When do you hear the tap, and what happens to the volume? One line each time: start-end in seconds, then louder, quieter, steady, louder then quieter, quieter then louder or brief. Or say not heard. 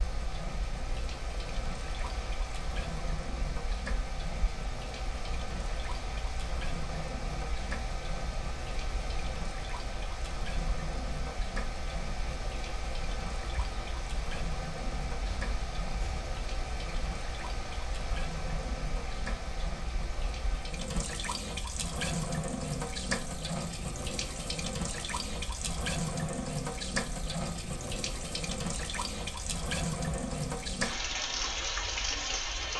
0.0-32.7 louder.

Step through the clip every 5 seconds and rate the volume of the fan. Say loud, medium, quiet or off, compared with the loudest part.
loud, loud, loud, loud, medium, medium, medium.